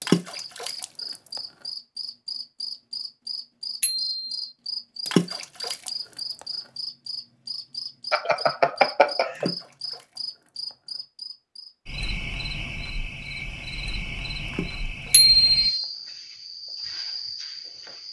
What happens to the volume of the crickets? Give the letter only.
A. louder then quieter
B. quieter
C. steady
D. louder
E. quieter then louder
C.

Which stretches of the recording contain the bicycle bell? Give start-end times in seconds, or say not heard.
3.8-4.5, 8.1-9.5, 15.1-15.6.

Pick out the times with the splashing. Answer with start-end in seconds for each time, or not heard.
0.0-1.4, 5.0-6.5, 9.3-10.8, 14.4-15.8.